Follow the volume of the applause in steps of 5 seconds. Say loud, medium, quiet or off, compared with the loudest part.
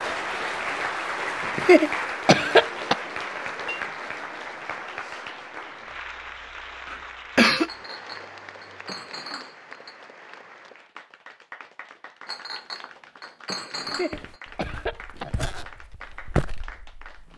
loud, medium, quiet, quiet.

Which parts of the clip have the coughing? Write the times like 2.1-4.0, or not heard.
1.4-3.0, 6.9-7.7, 13.8-15.4.